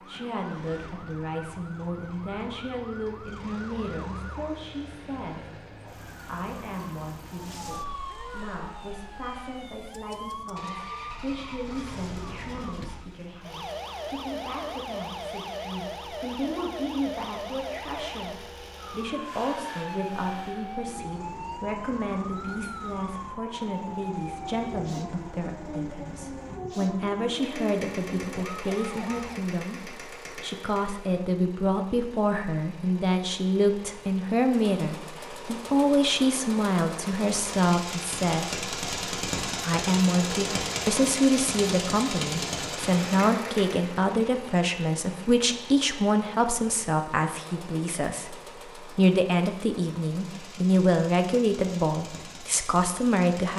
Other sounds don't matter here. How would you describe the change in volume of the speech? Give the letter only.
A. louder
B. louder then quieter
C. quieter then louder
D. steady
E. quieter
A.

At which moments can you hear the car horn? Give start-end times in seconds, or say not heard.
not heard.